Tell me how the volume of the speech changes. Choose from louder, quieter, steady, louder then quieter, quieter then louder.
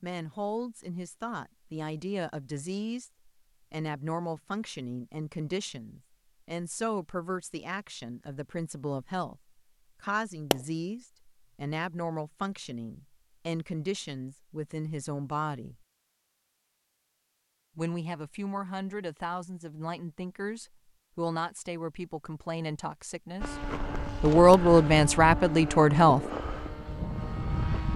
louder.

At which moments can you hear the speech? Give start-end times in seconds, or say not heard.
0.0-15.8, 17.8-26.2.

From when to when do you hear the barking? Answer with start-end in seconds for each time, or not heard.
not heard.